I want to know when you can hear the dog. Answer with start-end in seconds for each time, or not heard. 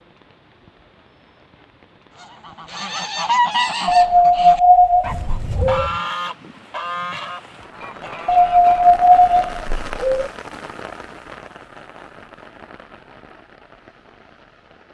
3.9-5.9, 8.2-10.3.